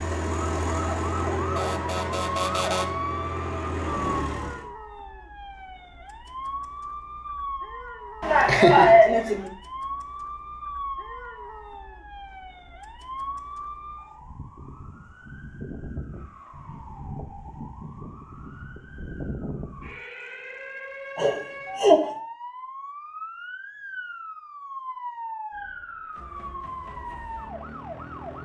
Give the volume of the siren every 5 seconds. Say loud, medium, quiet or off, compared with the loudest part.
loud, medium, medium, medium, medium, medium.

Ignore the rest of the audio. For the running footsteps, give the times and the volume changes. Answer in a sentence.
You can't hear the running footsteps here.